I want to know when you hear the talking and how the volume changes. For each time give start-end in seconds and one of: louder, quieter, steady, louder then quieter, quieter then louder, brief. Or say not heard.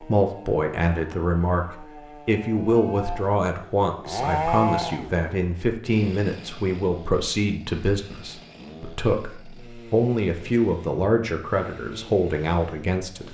0.0-13.2 steady.